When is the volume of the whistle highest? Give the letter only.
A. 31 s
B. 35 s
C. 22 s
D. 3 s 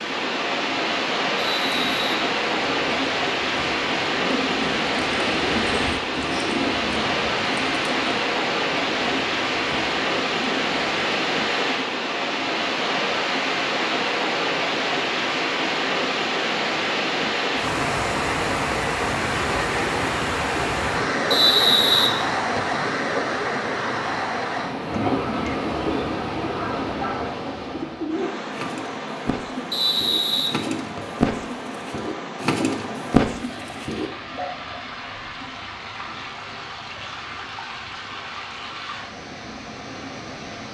C.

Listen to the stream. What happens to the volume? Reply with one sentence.
The loudness of the stream goes down.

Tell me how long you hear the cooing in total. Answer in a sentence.
You can hear the cooing for 19 seconds altogether.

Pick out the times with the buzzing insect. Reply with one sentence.
The buzzing insect can't be heard in this clip.